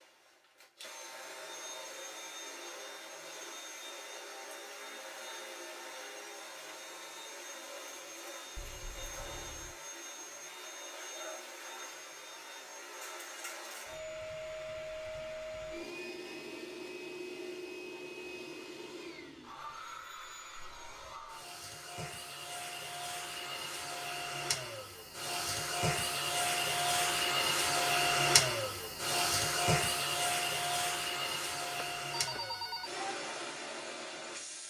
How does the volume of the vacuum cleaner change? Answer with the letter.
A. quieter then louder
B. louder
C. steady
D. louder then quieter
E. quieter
B.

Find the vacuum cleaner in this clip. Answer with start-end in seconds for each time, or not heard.
0.0-34.6.